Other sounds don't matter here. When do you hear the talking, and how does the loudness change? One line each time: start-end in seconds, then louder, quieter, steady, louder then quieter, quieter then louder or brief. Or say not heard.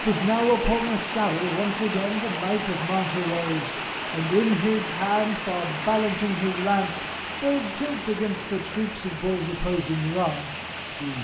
0.0-11.2 steady.